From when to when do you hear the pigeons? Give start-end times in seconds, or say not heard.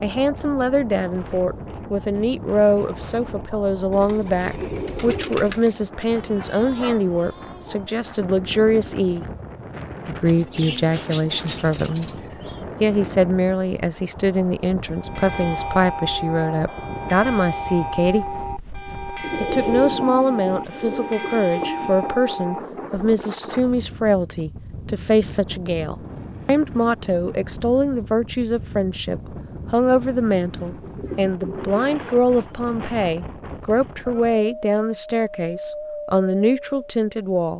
3.9-5.8, 10.2-12.6, 19.2-21.9, 30.8-31.8.